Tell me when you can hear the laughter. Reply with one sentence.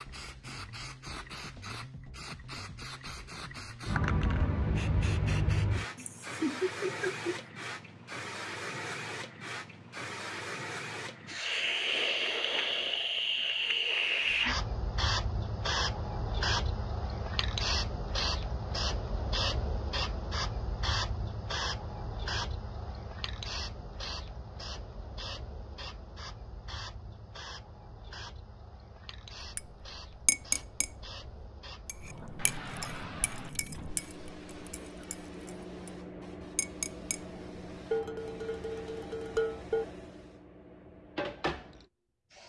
You can hear the laughter from 6.0 to 7.4 s.